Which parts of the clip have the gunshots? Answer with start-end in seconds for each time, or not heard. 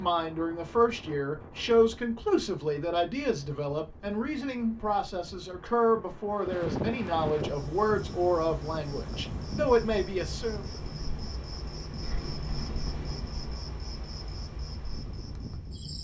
12.0-13.2.